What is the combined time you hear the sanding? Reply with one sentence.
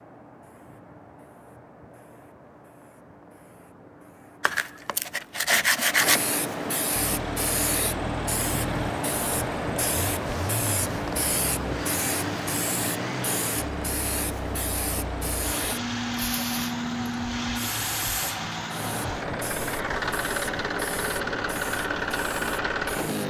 The sanding can be heard for 2 seconds in total.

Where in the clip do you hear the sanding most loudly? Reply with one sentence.
The volume of the sanding peaks at 6 seconds.